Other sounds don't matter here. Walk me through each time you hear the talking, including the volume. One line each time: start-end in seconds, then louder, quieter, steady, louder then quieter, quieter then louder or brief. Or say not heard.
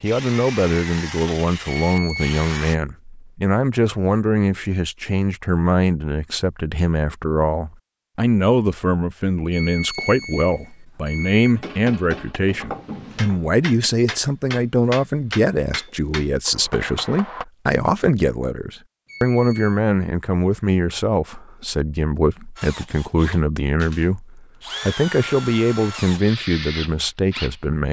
0.0-27.8 steady.